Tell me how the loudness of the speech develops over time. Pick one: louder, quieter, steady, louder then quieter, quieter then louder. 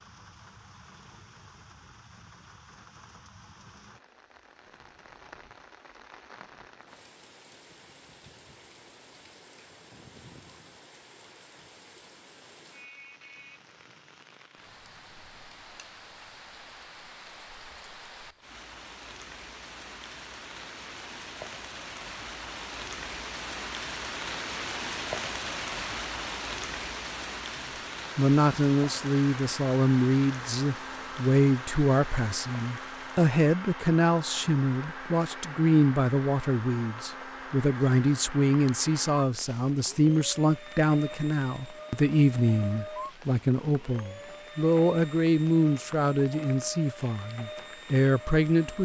steady.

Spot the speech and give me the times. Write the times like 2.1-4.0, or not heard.
28.1-48.8.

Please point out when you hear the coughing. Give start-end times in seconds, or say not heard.
not heard.